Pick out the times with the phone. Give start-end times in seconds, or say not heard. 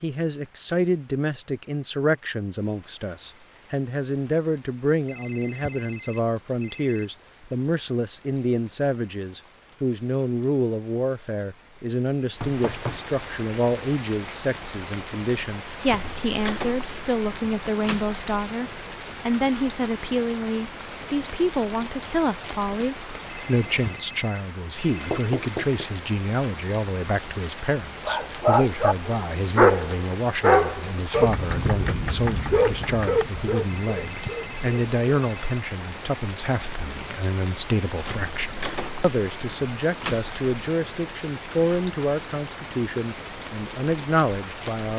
5.0-7.0, 23.2-25.3, 33.6-35.6.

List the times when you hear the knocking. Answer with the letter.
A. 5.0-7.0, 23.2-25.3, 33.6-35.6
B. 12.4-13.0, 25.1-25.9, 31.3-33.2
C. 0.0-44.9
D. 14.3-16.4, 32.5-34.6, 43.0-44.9
B.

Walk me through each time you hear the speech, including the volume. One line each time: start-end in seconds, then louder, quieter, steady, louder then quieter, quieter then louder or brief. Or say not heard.
0.0-44.9 steady.